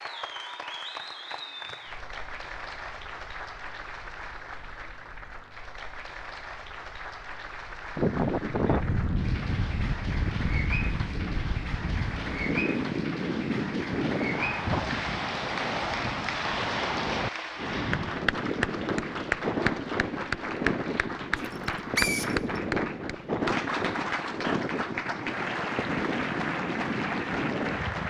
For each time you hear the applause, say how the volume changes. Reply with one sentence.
The applause can be heard from 0.0 to 28.0 s, getting louder.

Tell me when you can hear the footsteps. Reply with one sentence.
You can't hear the footsteps here.